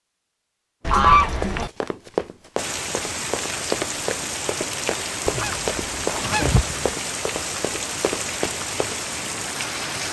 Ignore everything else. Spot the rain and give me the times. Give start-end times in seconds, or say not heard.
2.5-10.0.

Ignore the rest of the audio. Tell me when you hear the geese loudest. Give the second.
1 s.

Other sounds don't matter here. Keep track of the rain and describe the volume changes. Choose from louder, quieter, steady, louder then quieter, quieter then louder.
steady.